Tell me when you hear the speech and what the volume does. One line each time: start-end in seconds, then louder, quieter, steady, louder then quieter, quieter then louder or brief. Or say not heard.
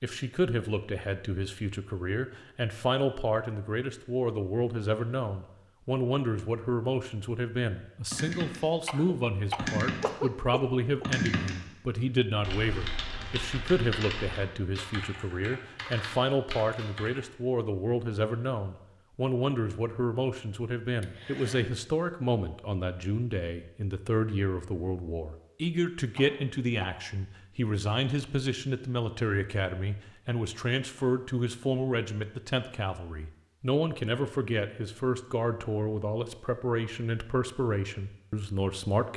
0.0-39.1 steady.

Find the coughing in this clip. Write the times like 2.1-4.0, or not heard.
8.8-11.1, 21.0-21.6, 26.1-26.9.